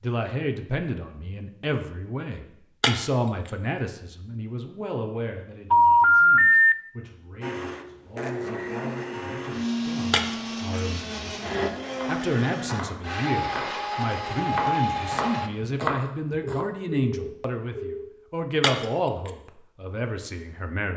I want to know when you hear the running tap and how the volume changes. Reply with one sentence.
The running tap can't be heard in this clip.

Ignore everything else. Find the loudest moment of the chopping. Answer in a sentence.
The volume of the chopping peaks at 16 seconds.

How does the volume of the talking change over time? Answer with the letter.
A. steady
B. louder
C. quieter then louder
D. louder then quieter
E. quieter
C.